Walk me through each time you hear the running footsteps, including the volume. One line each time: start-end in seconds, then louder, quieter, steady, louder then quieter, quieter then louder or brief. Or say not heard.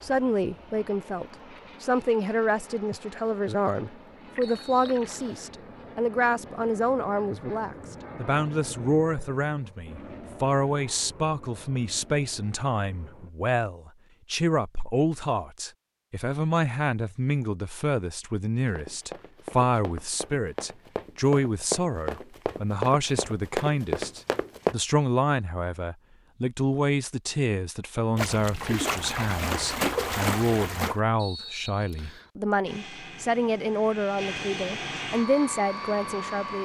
18.6-24.8 louder.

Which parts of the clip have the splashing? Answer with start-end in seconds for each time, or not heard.
4.3-5.3, 28.1-31.0.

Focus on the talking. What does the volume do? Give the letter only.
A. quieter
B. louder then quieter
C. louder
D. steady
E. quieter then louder
D.